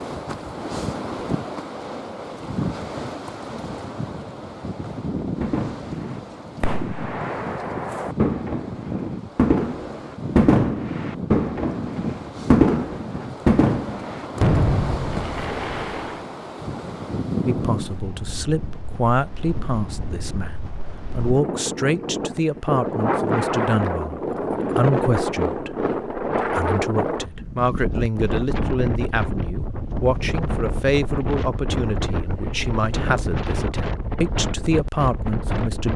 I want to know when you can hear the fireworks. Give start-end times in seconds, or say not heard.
5.4-16.2.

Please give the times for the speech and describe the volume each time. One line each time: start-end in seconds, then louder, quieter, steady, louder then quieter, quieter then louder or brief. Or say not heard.
17.4-35.9 steady.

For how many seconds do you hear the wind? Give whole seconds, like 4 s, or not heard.
36 s.